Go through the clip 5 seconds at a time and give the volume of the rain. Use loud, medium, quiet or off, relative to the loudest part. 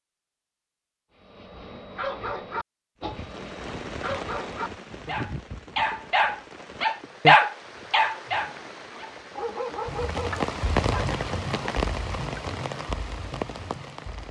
medium, medium, loud.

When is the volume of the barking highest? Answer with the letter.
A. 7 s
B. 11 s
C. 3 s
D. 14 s
A.